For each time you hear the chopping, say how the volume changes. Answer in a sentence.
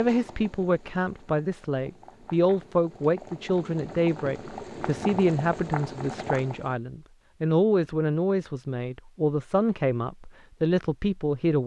The chopping can't be heard in this clip.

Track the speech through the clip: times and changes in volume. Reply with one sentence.
The speech can be heard from 0.0 to 11.6 s, at a steady volume.